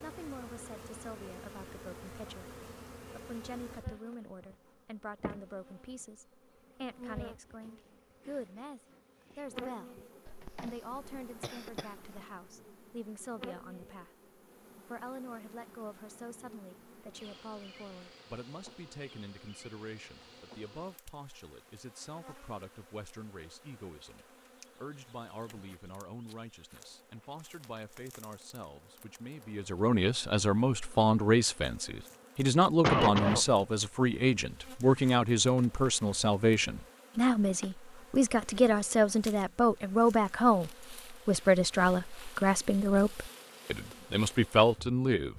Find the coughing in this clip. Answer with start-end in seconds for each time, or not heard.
10.2-12.2, 32.8-33.5.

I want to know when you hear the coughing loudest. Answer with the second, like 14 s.
33 s.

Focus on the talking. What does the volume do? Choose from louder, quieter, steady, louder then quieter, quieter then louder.
louder.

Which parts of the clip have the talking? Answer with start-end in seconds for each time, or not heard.
0.0-10.0, 10.6-45.3.